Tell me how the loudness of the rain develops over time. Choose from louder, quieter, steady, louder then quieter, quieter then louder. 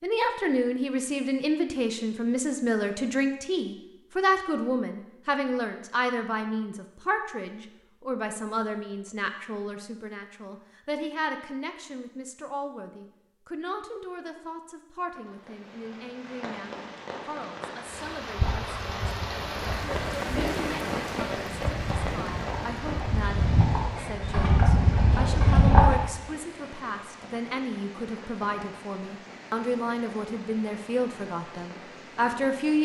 louder then quieter.